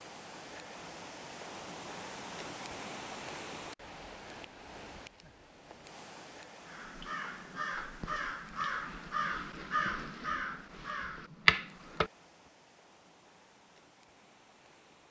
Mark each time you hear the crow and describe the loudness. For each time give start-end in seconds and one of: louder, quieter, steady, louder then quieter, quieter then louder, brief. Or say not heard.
6.7-12.1 louder.